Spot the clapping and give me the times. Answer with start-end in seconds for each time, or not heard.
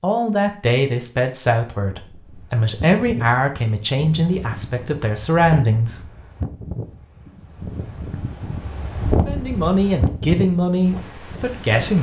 not heard.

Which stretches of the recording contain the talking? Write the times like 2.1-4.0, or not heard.
0.0-6.0, 9.2-11.9.